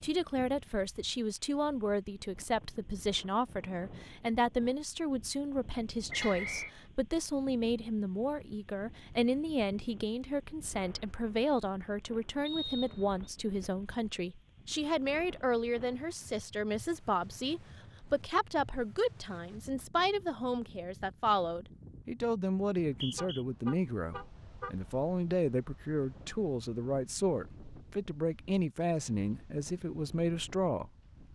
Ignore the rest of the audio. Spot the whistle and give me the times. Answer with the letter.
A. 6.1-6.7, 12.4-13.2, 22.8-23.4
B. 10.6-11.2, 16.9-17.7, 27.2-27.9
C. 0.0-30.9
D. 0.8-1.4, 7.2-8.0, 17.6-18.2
A.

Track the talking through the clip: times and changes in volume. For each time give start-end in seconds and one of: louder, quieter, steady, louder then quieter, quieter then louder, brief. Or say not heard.
0.0-30.9 steady.